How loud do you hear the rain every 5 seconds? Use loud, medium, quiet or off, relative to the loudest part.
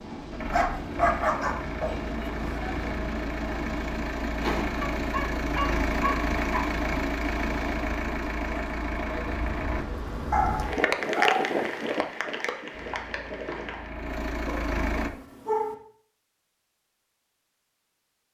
medium, medium, loud, off.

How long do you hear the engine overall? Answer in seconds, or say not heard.
12 s.